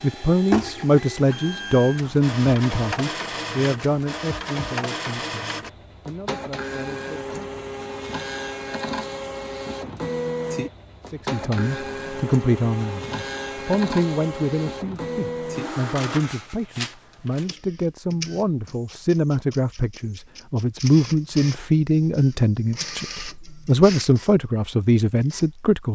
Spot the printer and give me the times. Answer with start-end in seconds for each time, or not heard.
0.0-25.6.